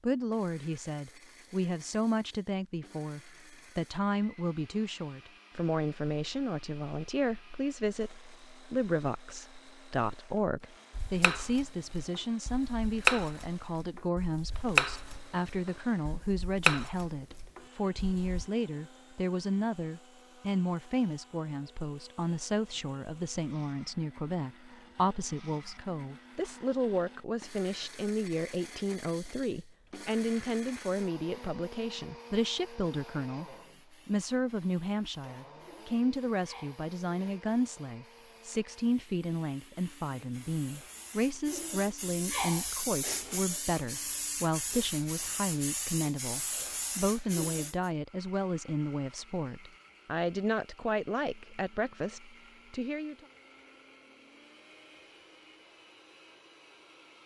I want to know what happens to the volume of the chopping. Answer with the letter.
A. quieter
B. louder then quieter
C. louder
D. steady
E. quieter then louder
B.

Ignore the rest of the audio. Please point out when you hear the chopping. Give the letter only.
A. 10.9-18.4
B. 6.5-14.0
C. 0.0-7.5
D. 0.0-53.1
A.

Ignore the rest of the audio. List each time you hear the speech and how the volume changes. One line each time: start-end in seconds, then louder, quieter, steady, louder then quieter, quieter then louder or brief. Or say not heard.
0.0-53.1 steady.